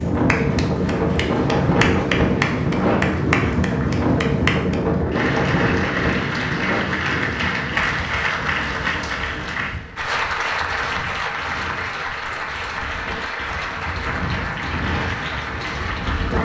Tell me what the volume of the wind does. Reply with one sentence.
The volume of the wind goes down, then up.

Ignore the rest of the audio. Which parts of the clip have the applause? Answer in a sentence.
The applause can be heard from 0.0 to 16.3 s.